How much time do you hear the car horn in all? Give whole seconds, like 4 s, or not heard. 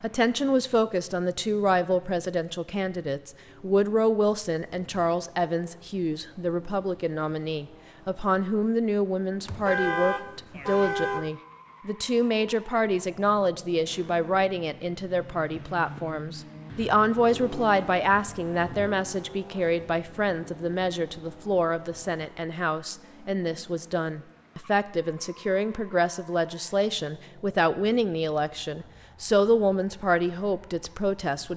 2 s.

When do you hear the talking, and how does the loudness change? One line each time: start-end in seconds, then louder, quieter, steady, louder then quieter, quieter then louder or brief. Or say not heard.
0.0-31.5 steady.